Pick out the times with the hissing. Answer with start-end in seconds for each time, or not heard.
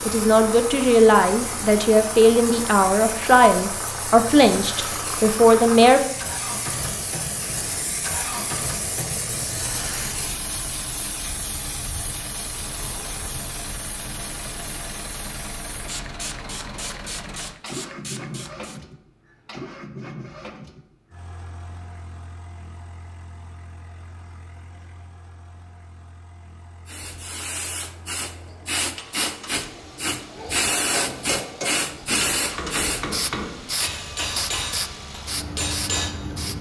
0.0-18.9, 26.9-36.5.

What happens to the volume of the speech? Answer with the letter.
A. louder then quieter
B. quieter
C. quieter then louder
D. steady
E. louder
D.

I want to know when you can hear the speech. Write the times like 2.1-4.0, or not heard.
0.0-6.0.